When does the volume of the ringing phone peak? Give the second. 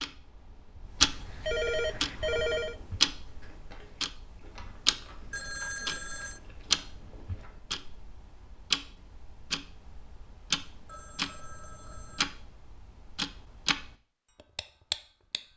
2 s.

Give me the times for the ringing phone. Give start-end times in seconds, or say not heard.
1.0-2.8, 5.3-6.4, 10.8-12.2.